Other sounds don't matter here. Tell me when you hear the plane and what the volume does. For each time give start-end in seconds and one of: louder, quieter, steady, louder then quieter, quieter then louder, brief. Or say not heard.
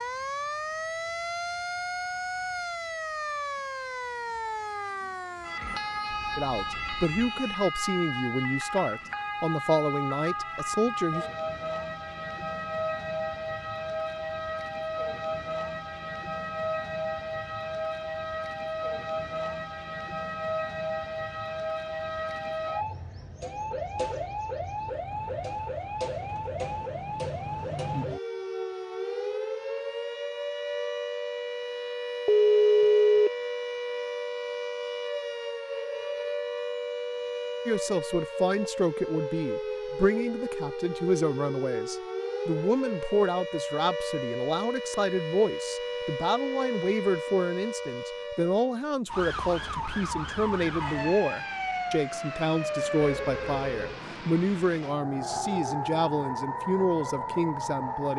not heard.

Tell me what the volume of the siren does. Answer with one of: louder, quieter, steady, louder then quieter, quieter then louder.
steady.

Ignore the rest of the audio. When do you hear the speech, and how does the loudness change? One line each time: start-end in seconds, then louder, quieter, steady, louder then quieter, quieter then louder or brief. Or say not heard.
6.3-11.2 steady
37.6-58.1 steady.